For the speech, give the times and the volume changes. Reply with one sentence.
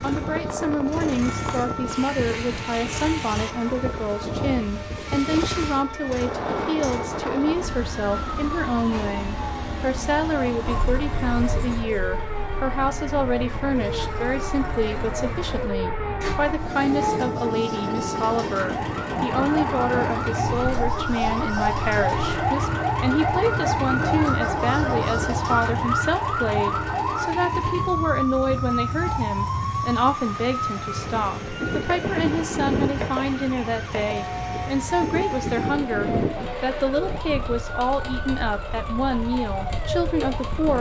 You can hear the speech from 0.0 to 40.7 s, at a steady volume.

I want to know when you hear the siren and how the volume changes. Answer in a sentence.
The siren can be heard from 0.0 to 40.5 s, getting louder then quieter.